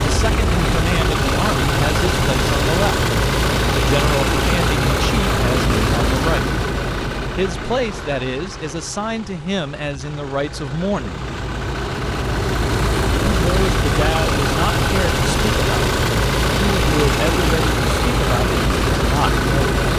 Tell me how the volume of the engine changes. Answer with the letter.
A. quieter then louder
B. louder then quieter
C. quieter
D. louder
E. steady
A.